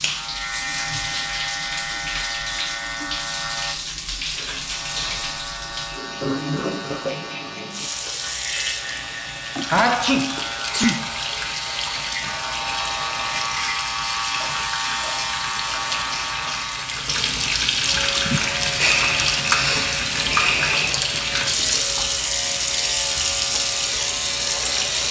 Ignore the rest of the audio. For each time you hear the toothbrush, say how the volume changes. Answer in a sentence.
You can't hear the toothbrush here.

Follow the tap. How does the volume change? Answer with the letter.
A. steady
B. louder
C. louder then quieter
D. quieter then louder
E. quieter
B.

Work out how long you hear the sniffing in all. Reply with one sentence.
The sniffing can be heard for 6 seconds in total.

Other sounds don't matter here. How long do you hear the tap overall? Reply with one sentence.
You can hear the tap for 25 seconds altogether.